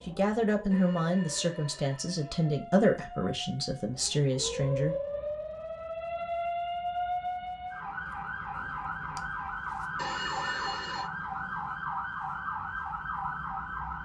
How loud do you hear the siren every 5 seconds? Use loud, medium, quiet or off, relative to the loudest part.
medium, loud, loud.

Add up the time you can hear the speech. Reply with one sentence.
You can hear the speech for 5 seconds altogether.